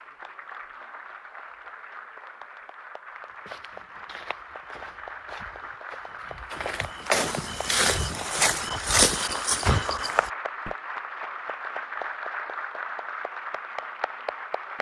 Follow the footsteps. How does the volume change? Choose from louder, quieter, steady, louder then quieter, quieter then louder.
louder.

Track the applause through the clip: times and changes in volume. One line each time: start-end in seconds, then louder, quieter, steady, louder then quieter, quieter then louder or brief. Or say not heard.
0.0-14.7 louder.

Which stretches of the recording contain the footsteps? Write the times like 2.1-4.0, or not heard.
3.2-10.7.